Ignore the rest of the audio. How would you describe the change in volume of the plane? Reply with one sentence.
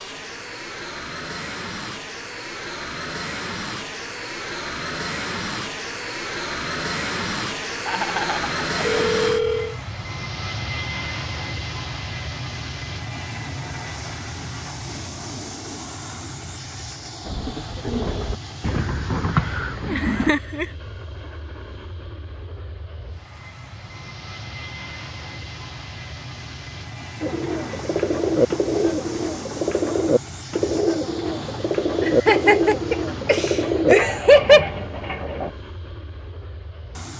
The loudness of the plane goes down.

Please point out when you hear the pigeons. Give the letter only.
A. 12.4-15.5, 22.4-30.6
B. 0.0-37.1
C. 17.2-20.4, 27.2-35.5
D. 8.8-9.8
C.